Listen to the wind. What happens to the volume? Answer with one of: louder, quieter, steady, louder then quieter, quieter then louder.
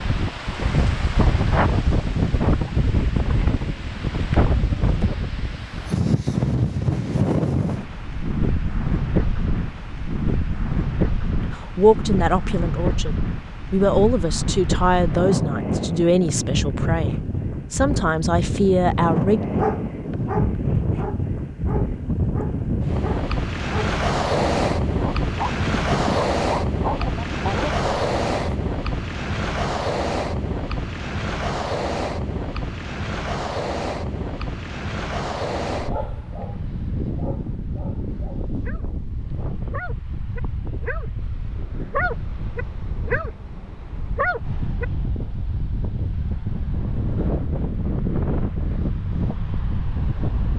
quieter.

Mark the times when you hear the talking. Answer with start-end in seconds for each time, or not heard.
11.4-19.4.